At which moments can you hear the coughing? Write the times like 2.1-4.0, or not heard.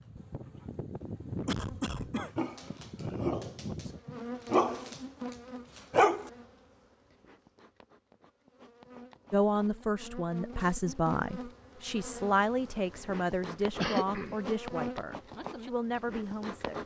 1.4-2.3, 13.8-14.3.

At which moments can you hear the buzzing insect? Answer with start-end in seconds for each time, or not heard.
0.0-16.8.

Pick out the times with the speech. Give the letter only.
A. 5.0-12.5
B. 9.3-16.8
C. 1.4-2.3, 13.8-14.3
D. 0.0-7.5
B.